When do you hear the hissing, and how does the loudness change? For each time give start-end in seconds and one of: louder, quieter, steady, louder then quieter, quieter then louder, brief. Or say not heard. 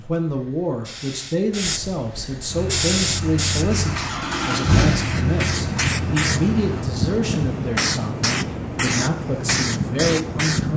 0.0-10.7 louder.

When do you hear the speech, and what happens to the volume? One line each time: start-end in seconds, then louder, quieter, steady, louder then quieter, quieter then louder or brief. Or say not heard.
0.0-10.7 steady.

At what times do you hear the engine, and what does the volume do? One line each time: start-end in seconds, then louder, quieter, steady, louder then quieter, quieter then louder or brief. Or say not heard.
2.5-6.9 louder then quieter.